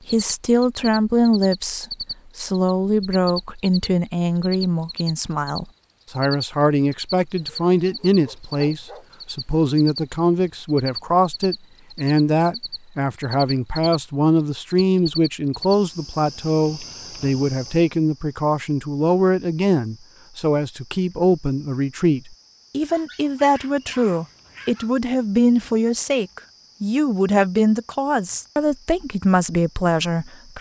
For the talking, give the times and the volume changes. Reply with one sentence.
The talking can be heard from 0.1 to 30.5 s, at a steady volume.